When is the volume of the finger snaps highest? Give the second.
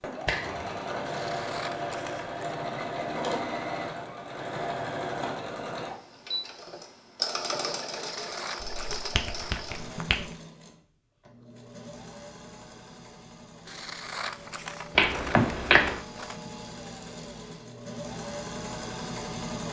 16 s.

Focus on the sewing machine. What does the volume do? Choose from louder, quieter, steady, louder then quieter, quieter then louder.
quieter then louder.